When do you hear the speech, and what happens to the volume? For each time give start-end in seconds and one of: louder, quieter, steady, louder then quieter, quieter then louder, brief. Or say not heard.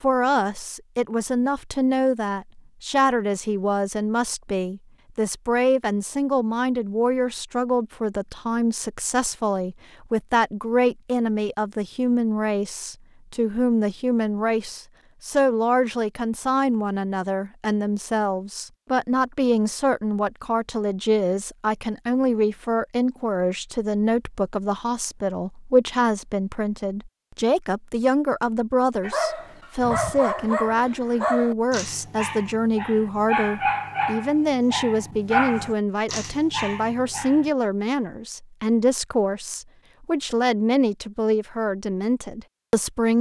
0.0-43.1 steady.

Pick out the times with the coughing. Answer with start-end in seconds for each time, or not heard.
not heard.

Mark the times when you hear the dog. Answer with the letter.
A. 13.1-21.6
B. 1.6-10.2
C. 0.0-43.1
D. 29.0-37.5
D.